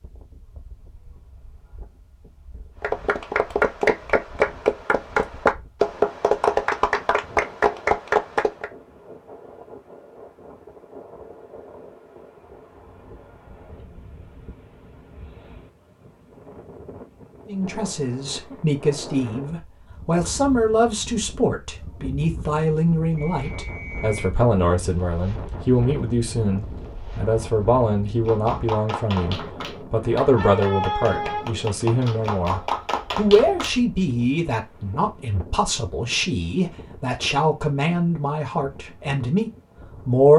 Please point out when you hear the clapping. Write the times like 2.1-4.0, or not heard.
2.8-8.7, 28.2-33.8.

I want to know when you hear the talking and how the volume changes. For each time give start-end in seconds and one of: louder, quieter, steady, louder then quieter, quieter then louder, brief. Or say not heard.
17.4-40.3 steady.